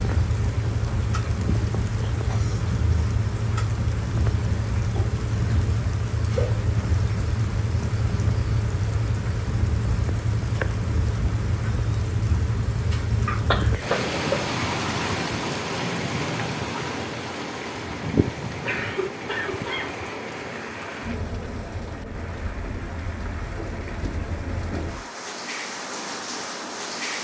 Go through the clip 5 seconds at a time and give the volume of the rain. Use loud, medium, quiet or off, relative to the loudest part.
loud, loud, loud, loud, medium, medium.